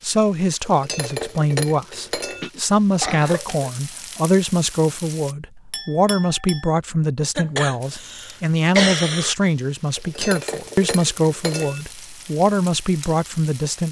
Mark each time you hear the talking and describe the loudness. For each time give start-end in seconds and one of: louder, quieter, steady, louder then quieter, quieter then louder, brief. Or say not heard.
0.0-13.8 steady.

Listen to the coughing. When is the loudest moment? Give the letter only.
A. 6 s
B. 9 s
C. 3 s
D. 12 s
B.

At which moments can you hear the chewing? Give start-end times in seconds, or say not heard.
not heard.